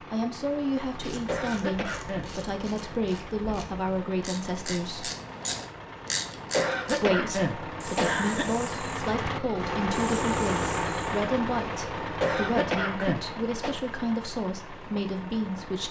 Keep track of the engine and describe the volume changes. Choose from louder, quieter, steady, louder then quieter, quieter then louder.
louder then quieter.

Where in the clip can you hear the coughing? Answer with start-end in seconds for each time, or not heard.
1.2-2.3, 6.5-8.4, 12.2-13.8.